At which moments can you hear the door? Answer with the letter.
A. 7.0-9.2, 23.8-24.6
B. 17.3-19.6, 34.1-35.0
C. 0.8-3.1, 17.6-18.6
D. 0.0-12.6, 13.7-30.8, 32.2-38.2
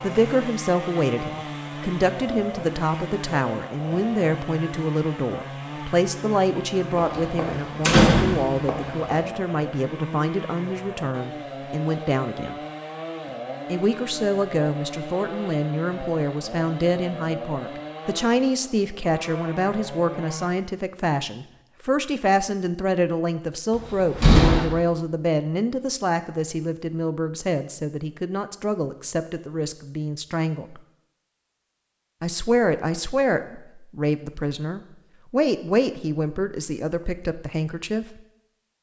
A.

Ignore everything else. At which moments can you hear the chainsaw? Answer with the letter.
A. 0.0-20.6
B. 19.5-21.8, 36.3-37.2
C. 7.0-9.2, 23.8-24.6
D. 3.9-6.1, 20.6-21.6
A.